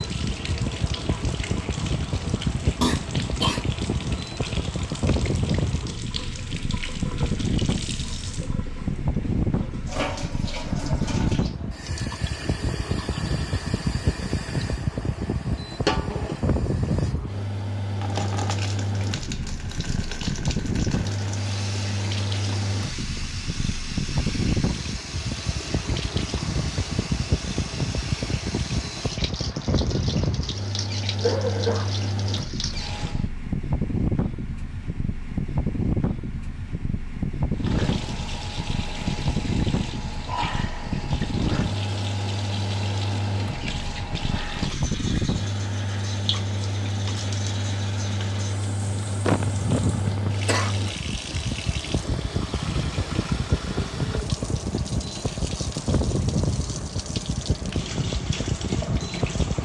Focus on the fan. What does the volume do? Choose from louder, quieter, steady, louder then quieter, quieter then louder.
steady.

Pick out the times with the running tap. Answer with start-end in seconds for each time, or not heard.
0.0-33.3, 37.5-59.6.